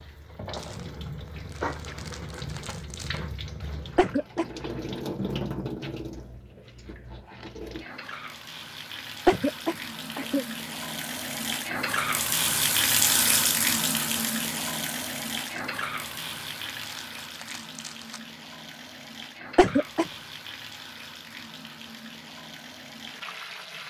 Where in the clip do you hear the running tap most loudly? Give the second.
13 s.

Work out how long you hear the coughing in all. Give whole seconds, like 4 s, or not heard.
2 s.